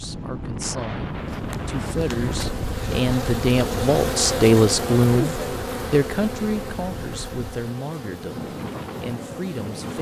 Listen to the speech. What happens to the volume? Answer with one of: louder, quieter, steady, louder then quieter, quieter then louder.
louder then quieter.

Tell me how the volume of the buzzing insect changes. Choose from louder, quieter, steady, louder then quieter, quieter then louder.
louder then quieter.